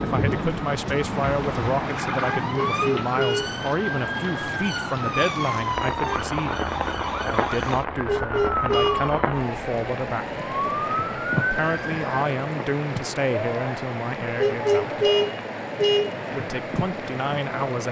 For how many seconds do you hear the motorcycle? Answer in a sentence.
You can't hear the motorcycle here.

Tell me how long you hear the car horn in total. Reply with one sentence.
The car horn can be heard for 4 seconds in total.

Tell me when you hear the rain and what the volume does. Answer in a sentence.
The rain can be heard from 0.0 to 17.8 s, at a steady volume.